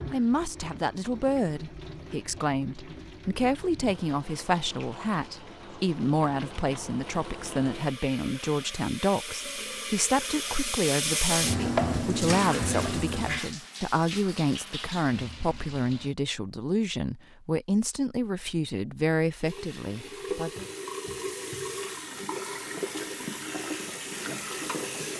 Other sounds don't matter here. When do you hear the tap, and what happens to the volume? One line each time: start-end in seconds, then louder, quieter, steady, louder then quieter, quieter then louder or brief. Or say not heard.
0.0-16.1 louder then quieter
19.4-25.1 steady.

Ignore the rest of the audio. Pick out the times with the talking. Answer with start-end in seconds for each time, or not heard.
0.1-20.6.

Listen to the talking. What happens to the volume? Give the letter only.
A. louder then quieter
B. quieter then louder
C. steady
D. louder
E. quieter
C.